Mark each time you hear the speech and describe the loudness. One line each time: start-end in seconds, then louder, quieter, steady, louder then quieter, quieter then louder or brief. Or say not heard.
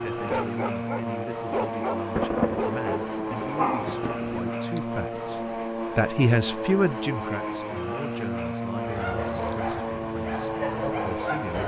0.0-11.6 louder then quieter.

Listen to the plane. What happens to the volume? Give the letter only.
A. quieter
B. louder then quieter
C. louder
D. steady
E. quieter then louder
D.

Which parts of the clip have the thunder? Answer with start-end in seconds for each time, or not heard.
2.1-4.4.